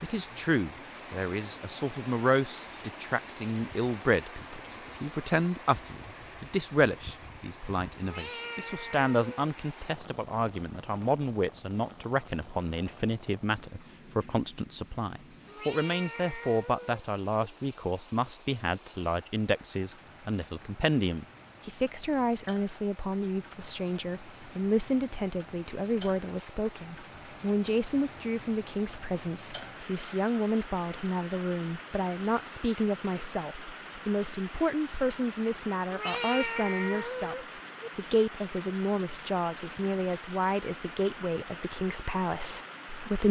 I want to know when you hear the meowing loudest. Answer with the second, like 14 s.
36 s.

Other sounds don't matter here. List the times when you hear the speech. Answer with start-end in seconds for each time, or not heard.
0.0-37.4, 38.0-43.2.